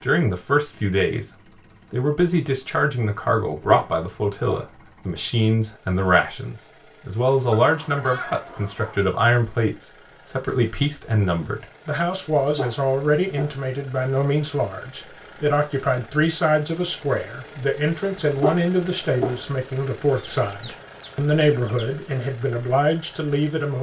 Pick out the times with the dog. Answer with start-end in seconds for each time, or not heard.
3.4-4.8, 12.4-13.7, 18.3-19.6.